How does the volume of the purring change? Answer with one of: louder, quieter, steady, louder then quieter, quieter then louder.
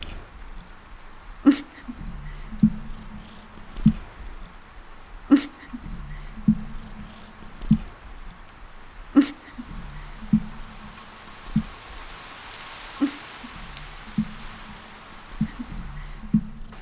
quieter.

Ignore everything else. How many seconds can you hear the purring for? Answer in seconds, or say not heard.
17 s.